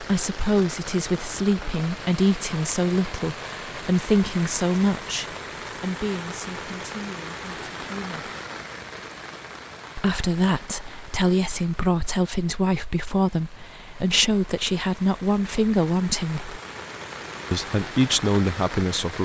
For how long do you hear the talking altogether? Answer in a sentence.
You can hear the talking for 17 seconds altogether.